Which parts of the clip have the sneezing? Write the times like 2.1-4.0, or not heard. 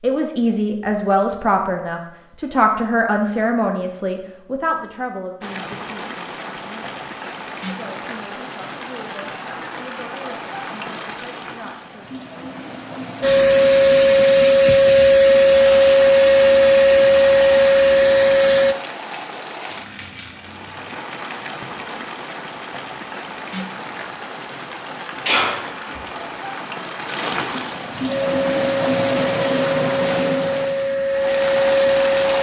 25.2-26.0.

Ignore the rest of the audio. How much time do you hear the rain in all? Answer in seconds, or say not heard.
27 s.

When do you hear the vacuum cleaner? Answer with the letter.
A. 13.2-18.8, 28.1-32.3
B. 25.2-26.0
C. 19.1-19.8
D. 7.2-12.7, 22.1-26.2
A.